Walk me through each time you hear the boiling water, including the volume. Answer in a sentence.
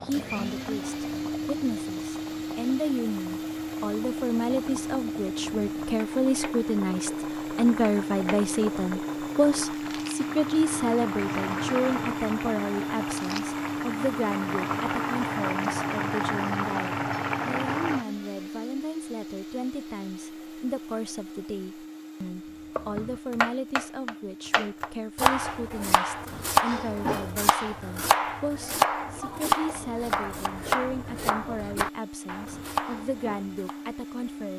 The boiling water can be heard from 0.0 to 18.1 s, getting louder.